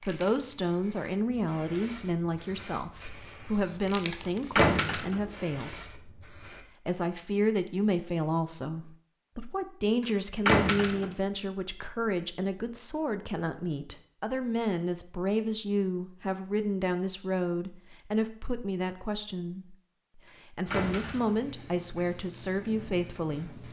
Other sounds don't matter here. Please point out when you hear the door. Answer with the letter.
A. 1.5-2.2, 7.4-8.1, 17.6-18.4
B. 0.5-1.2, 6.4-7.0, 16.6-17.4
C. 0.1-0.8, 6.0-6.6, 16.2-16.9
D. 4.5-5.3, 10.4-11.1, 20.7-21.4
D.